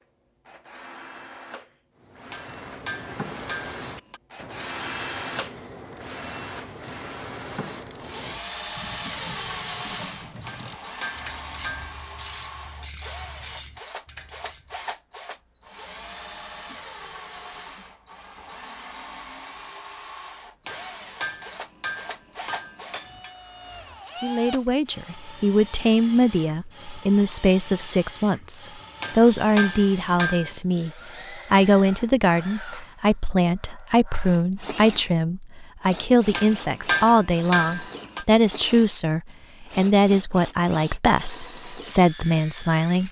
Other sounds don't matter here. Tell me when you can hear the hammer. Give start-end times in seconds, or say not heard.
2.3-4.2, 10.4-11.9, 20.6-23.4, 29.0-30.6, 36.3-38.2.